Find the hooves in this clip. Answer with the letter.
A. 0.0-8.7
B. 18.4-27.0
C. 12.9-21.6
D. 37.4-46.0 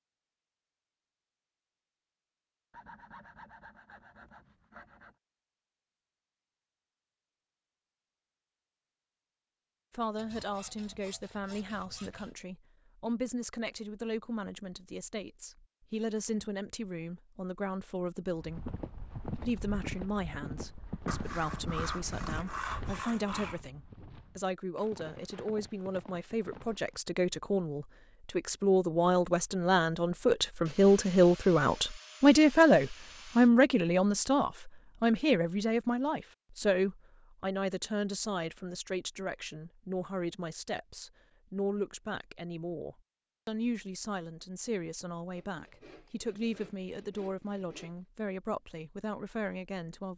B.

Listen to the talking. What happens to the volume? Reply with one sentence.
The loudness of the talking goes up, then down.